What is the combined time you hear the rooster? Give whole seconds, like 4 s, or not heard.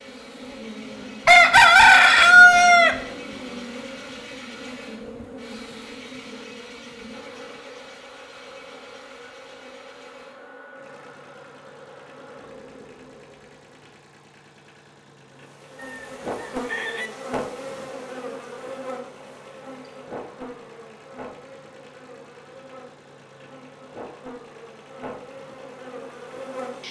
3 s.